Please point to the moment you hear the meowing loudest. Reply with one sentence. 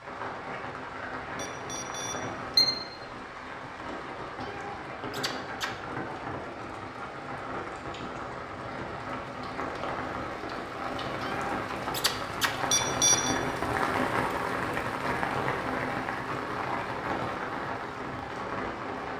The loudest moment of the meowing is at 12 seconds.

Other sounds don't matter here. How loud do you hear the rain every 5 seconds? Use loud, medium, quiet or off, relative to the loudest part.
medium, medium, loud, loud.